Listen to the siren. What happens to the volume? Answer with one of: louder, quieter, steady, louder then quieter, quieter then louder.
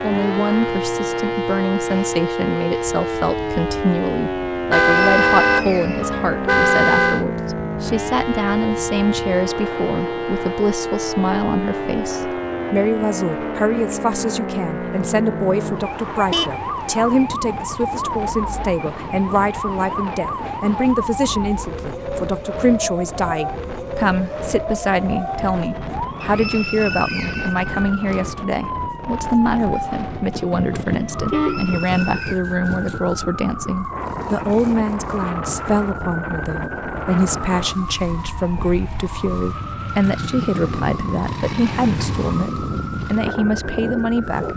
quieter.